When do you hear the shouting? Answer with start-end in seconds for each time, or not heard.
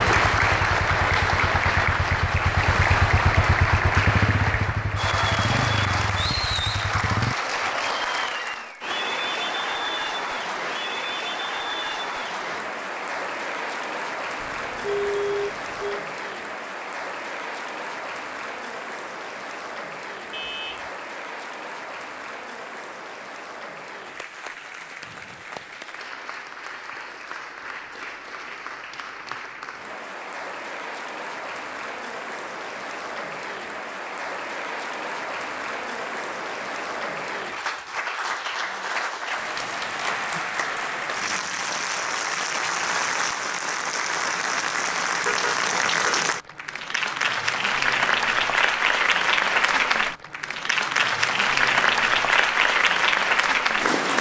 not heard.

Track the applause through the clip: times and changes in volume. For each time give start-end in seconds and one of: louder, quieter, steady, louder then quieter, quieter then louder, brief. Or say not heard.
0.0-54.1 quieter then louder.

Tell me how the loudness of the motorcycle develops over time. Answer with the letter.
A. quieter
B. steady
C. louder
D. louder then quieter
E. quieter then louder
D.